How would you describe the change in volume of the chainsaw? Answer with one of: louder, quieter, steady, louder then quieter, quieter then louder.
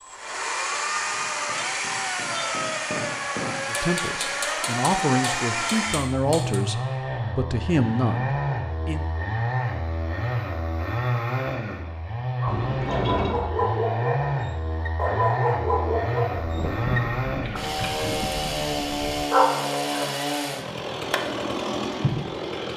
steady.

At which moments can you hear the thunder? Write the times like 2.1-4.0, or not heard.
16.3-19.3.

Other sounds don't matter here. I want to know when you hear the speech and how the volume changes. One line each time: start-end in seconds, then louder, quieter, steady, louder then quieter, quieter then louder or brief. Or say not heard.
3.6-9.1 steady.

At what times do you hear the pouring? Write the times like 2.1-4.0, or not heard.
12.4-13.4.